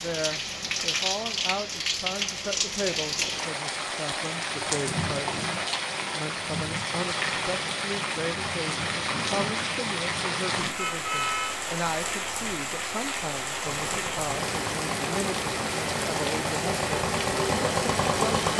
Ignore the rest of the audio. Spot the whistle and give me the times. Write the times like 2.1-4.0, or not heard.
not heard.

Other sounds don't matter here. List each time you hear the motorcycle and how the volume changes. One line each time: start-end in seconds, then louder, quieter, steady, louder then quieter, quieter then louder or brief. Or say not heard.
13.6-18.5 louder.